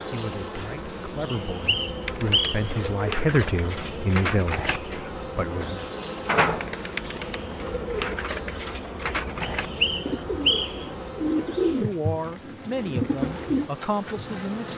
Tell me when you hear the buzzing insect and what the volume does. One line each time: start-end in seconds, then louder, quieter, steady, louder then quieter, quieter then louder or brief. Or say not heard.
0.0-14.7 steady.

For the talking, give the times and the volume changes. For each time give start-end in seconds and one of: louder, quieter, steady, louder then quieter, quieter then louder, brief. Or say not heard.
0.0-5.9 louder then quieter
11.8-14.7 brief.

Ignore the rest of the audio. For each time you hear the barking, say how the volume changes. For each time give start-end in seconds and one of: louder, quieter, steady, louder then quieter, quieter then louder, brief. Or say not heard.
not heard.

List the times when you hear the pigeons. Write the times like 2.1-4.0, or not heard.
2.0-13.7.